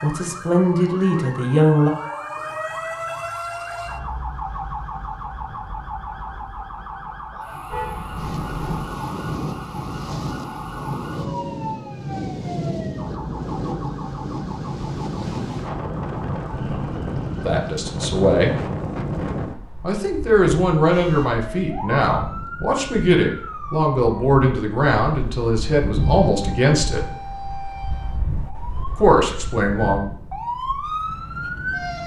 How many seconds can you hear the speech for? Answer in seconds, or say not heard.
11 s.